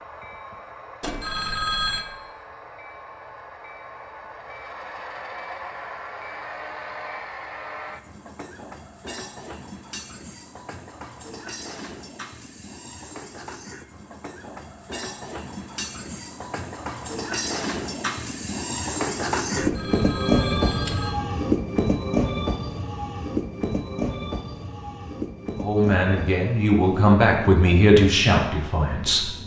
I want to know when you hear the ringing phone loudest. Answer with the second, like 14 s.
2 s.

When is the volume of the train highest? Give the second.
20 s.